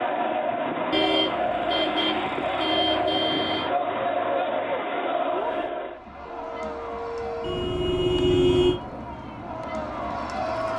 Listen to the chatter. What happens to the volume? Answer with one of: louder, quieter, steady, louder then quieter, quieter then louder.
quieter.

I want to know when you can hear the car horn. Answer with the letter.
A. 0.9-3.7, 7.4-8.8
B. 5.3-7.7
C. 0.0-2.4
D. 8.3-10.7
A.